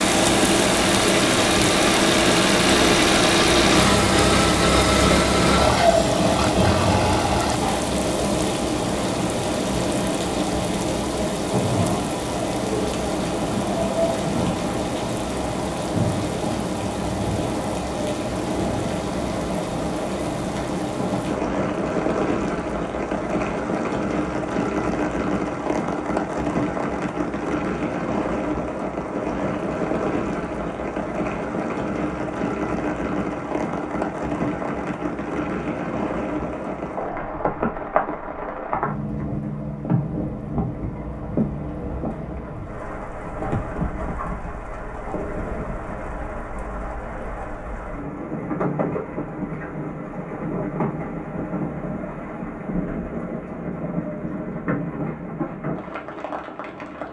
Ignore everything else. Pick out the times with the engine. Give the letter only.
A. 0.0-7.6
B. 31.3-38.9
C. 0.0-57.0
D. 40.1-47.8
A.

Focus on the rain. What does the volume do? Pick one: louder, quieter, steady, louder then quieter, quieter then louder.
quieter.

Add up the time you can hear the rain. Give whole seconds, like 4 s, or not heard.
57 s.